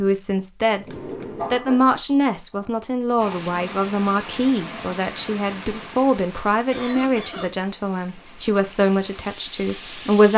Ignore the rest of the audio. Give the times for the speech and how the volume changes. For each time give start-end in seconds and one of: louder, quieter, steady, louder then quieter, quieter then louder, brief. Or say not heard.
0.0-0.8 brief
1.5-10.3 steady.